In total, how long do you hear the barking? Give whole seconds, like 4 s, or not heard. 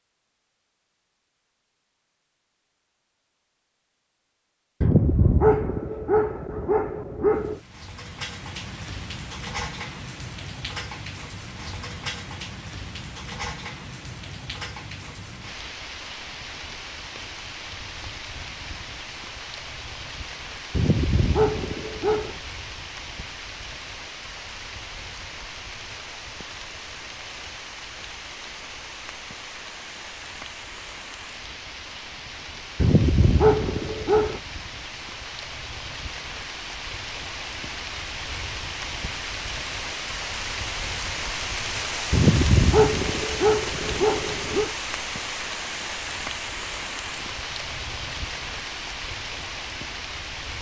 9 s.